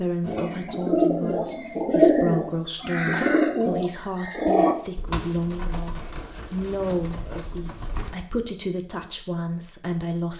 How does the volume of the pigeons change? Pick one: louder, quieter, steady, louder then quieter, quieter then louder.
quieter.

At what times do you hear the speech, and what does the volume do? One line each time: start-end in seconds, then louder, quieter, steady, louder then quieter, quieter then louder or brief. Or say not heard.
0.0-10.3 steady.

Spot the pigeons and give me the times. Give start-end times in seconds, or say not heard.
0.2-8.2.